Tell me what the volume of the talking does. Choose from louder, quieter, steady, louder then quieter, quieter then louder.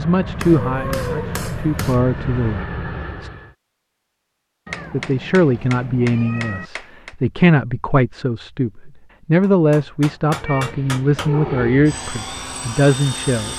steady.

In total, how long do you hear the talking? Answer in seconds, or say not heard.
12 s.